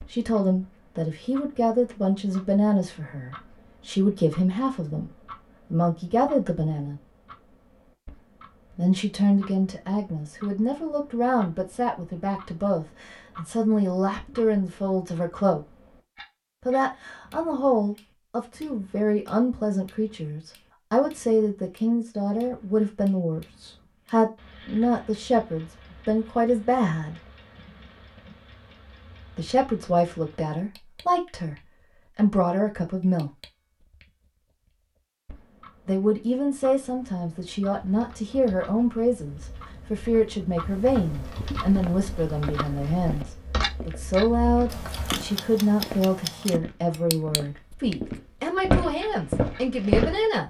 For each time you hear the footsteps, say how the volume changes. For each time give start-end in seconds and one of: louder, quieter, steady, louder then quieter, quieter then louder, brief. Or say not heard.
41.6-50.2 louder.